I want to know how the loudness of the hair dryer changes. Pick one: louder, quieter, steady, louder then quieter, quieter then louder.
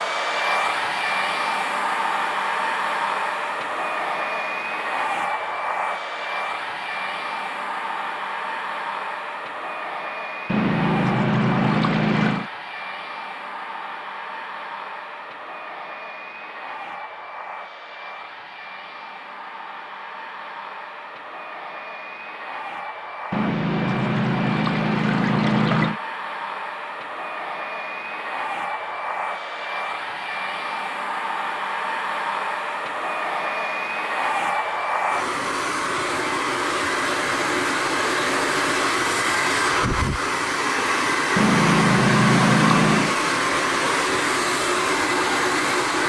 quieter then louder.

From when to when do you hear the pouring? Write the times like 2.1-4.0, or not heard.
10.4-12.5, 23.3-26.0, 41.4-43.1.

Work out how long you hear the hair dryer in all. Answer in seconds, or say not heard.
46 s.